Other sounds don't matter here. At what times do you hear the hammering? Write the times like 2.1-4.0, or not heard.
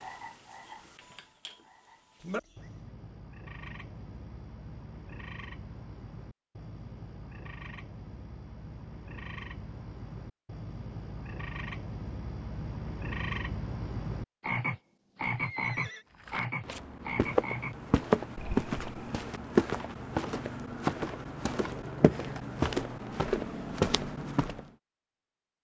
not heard.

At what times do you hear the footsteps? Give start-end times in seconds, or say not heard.
16.2-24.6.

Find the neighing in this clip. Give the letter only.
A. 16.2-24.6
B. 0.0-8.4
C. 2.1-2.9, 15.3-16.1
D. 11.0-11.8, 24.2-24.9
C.